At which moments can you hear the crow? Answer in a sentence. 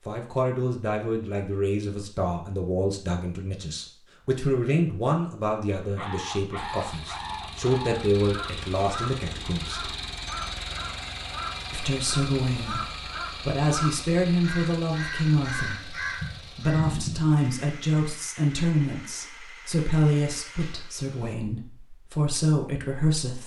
The crow can be heard from 5.8 to 17.2 s.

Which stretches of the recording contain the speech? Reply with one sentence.
You can hear the speech from 0.1 to 9.9 s and from 11.7 to 23.4 s.